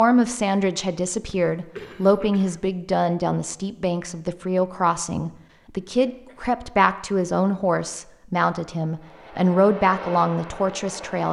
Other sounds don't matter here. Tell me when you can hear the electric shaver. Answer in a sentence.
The electric shaver can't be heard in this clip.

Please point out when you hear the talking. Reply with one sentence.
The talking can be heard from 0.0 to 11.2 s.